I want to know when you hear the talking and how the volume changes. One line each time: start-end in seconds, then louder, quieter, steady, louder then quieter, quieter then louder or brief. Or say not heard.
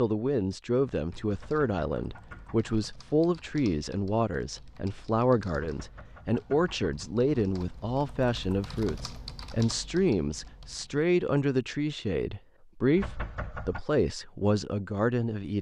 0.0-15.5 steady.